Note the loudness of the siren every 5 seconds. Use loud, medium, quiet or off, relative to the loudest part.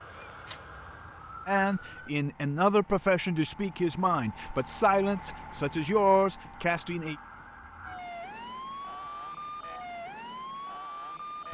medium, loud, loud.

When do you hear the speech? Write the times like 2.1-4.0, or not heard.
1.4-7.2.